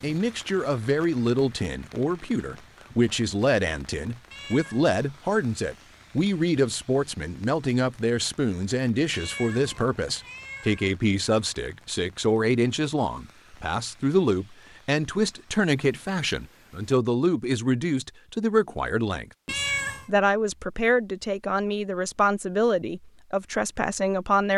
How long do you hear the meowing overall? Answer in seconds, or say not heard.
3 s.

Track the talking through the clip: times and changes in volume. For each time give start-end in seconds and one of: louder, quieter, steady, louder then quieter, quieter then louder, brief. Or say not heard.
0.0-24.5 steady.